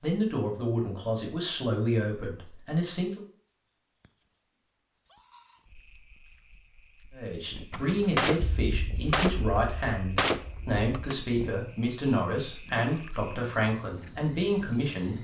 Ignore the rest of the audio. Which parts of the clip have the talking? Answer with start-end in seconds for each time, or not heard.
0.0-3.2, 7.1-15.1.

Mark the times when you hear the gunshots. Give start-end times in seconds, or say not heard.
7.7-11.2.